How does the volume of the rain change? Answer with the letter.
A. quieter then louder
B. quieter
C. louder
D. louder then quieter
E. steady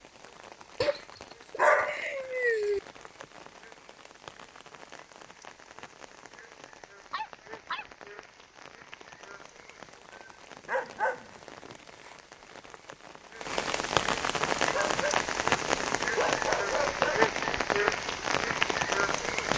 C.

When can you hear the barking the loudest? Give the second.
2 s.